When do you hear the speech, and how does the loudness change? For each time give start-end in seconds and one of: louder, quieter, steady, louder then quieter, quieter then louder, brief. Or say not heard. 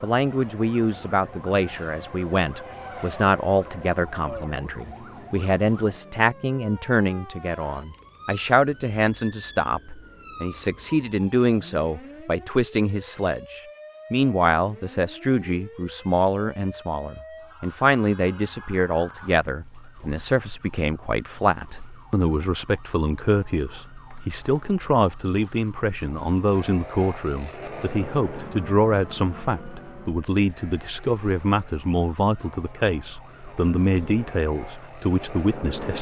0.0-35.9 steady.